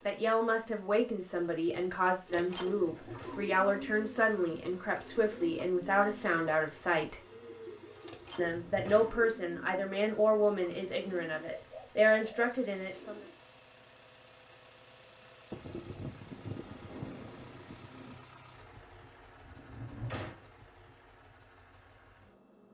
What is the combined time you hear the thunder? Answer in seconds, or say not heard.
3 s.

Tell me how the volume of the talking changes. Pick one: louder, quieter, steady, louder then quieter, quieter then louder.
steady.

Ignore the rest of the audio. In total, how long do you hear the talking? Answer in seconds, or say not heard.
12 s.